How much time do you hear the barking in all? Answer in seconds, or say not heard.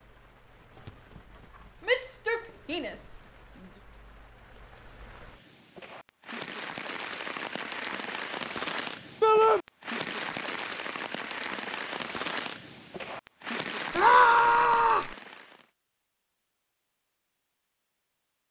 not heard.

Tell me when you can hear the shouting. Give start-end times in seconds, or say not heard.
1.9-3.1, 9.2-9.6, 13.9-15.1.